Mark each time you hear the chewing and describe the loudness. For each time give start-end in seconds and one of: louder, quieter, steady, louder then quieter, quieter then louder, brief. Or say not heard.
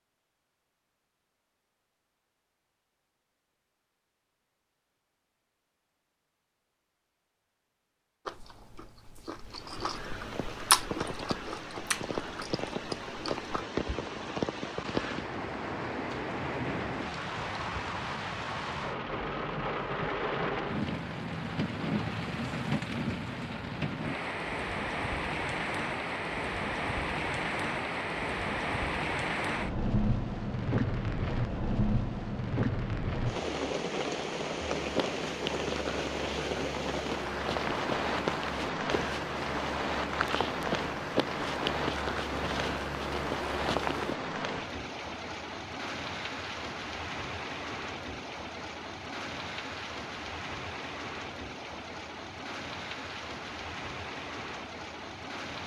8.2-13.7 louder then quieter.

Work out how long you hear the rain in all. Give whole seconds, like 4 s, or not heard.
46 s.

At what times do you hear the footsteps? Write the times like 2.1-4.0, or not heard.
34.8-44.1.